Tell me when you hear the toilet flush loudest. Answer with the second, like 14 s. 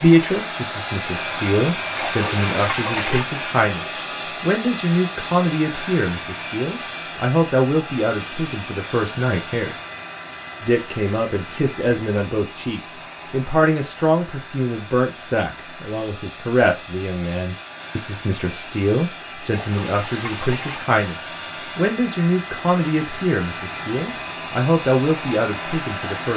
3 s.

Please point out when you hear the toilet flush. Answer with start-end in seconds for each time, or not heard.
1.9-3.3, 19.5-20.9.